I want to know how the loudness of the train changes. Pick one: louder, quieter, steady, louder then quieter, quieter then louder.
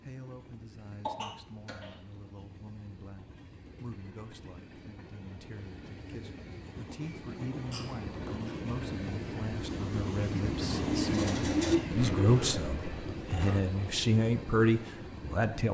louder then quieter.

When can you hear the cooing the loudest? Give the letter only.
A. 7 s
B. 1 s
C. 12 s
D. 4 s
C.